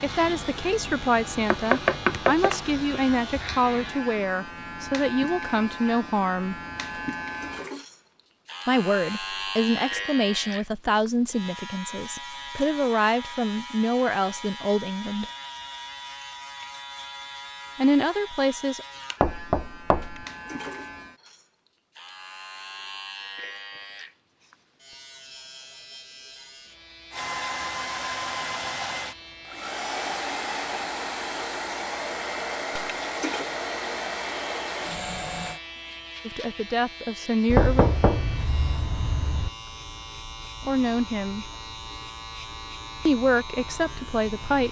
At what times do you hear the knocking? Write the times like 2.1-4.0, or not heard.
1.5-2.6, 19.2-20.2, 37.5-39.5.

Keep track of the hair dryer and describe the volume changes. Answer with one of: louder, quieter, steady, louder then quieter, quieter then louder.
steady.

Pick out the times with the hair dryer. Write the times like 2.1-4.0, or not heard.
27.1-35.6.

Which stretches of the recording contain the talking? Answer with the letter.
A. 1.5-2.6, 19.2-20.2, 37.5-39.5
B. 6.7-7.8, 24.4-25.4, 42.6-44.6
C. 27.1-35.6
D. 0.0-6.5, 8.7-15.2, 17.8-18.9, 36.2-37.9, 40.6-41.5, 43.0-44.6
D.